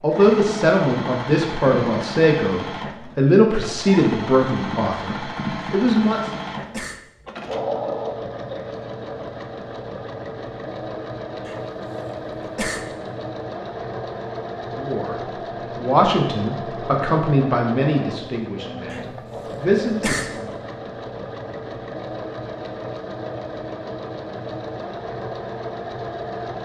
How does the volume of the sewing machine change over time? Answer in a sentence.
The volume of the sewing machine stays about the same.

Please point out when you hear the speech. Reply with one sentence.
You can hear the speech from 0.0 to 6.3 s and from 14.7 to 20.5 s.